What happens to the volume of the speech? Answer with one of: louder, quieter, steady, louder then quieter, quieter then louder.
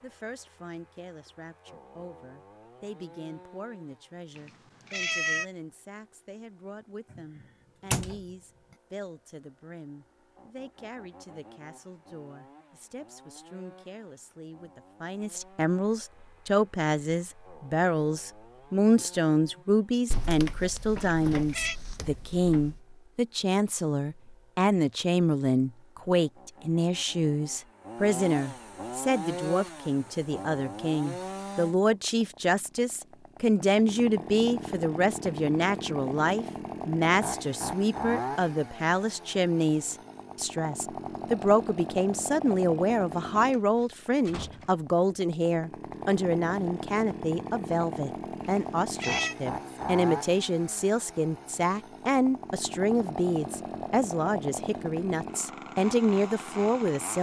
louder.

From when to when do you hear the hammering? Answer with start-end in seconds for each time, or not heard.
not heard.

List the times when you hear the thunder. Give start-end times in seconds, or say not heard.
not heard.